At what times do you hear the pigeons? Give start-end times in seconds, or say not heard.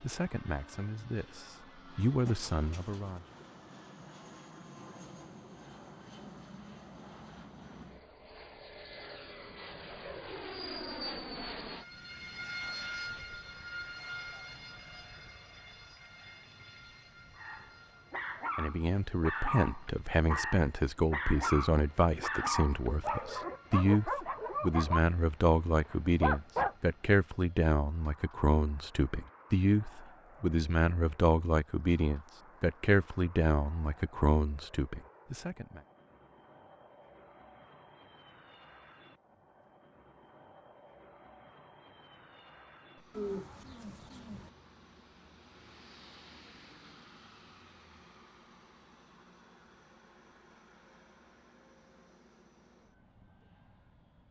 2.2-3.5, 43.1-44.5.